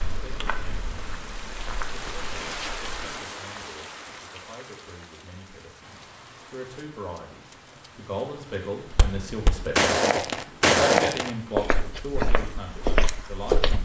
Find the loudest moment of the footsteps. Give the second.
11 s.